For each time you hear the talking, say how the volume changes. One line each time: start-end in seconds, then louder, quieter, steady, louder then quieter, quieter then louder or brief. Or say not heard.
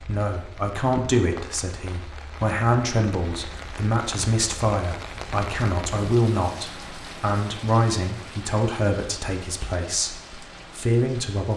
0.0-11.5 steady.